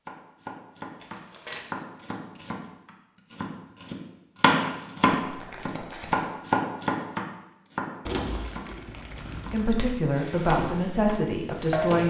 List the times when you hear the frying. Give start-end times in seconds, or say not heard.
10.1-12.0.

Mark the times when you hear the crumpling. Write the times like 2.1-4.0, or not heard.
1.0-1.6, 5.0-6.2, 8.1-9.9.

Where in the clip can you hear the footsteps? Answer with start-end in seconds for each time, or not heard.
not heard.